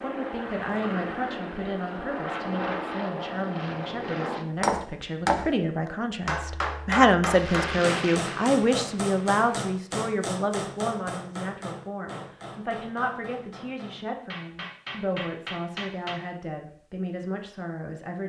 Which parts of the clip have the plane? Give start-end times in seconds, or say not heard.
0.0-4.5, 7.2-9.4.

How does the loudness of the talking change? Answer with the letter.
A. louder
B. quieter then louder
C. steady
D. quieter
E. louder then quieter
E.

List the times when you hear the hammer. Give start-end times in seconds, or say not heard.
4.6-16.2.